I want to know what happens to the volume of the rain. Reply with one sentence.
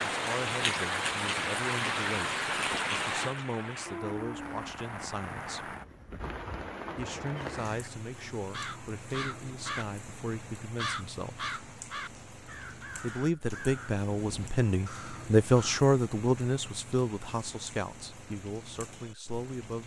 The loudness of the rain goes down.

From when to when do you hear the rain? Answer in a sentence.
You can hear the rain from 0.0 to 19.8 s.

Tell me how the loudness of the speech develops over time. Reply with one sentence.
The loudness of the speech goes up, then down.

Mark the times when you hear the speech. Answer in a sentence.
The speech can be heard from 0.1 to 5.8 s, from 7.0 to 11.5 s and from 13.0 to 19.8 s.